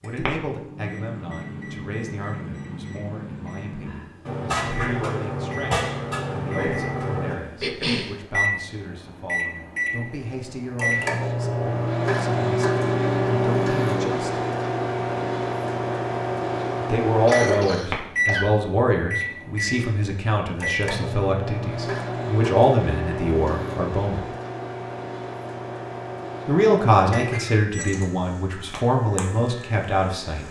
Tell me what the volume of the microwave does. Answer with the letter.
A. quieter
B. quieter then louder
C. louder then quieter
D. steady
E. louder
C.